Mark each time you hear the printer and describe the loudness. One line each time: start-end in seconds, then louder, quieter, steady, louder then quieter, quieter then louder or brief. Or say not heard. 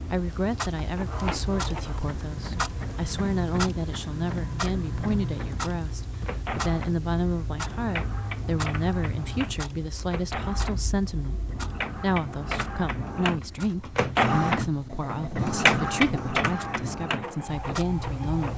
0.0-18.5 louder.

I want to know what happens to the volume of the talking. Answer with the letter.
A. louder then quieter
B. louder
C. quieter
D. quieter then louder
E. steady
E.